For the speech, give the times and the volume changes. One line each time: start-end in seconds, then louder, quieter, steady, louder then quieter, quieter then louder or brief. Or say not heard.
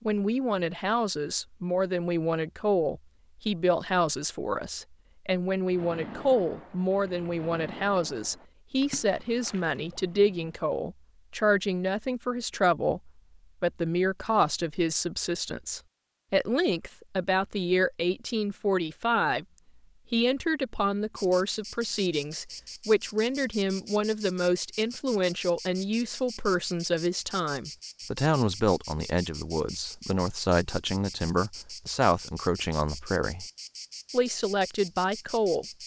0.0-19.4 steady
20.1-33.5 steady
34.1-35.6 brief.